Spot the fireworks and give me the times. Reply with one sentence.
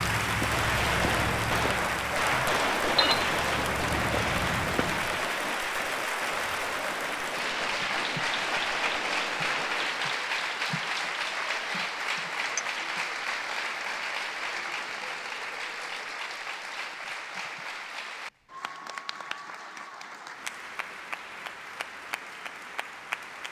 You can hear the fireworks from 0.5 to 10.1 s.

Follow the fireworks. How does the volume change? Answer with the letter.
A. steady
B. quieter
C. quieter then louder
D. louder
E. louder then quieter
B.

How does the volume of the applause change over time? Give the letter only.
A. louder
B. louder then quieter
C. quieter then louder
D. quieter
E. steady
D.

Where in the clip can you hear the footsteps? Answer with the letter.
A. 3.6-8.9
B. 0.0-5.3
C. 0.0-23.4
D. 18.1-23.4
B.